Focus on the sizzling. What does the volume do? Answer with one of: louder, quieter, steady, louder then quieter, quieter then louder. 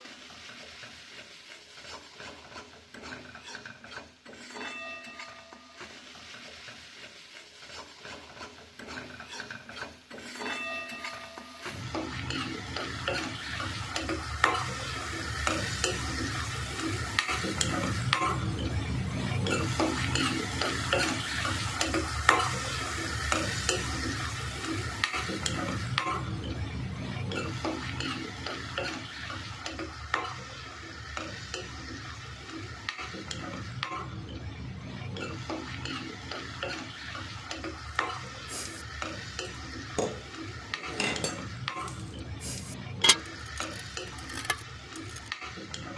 louder then quieter.